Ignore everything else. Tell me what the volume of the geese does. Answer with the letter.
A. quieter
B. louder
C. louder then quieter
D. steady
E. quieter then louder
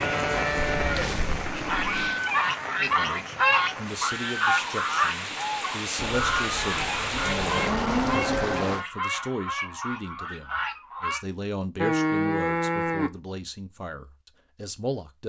A.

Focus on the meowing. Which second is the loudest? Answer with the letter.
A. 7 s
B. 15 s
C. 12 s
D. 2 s
D.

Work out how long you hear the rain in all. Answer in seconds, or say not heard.
9 s.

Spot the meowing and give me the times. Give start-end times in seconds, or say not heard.
0.6-2.2.